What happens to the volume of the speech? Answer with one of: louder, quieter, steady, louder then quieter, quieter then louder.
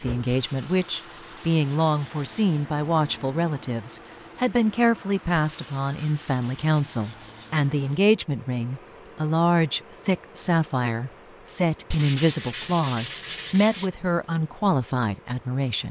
steady.